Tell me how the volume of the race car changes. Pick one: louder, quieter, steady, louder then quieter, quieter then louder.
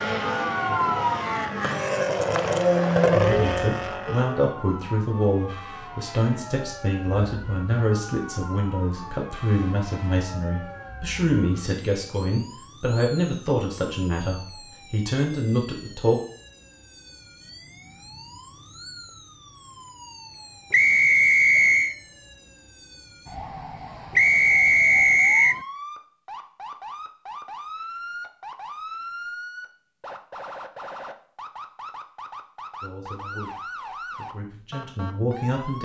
louder then quieter.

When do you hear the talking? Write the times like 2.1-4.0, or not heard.
3.1-16.2, 32.8-35.8.